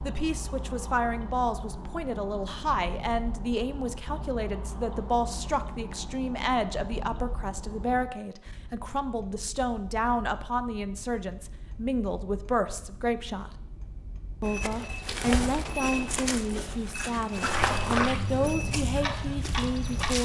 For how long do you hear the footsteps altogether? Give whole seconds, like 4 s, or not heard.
6 s.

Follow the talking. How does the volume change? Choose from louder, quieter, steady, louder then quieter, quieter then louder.
steady.